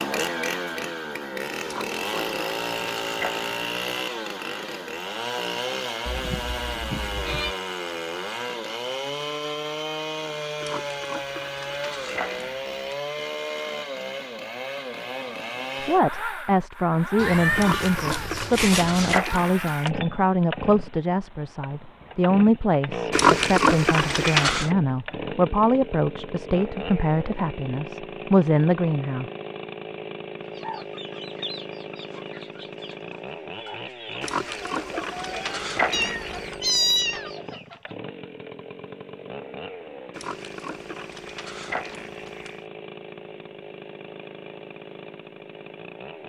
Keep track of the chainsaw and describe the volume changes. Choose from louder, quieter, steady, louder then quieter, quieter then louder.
quieter.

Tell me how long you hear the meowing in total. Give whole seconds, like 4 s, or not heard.
5 s.